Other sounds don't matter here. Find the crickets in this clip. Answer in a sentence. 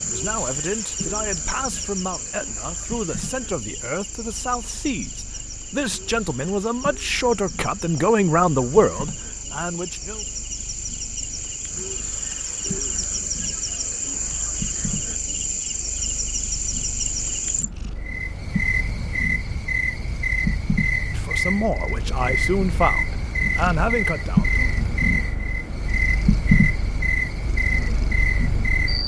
You can hear the crickets from 0.0 to 29.0 s.